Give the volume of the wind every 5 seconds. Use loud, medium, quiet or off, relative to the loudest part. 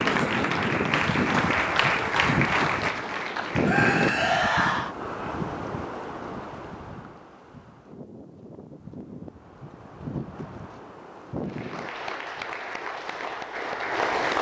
loud, medium, medium.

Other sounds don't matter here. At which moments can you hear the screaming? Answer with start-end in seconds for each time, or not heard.
3.6-5.0.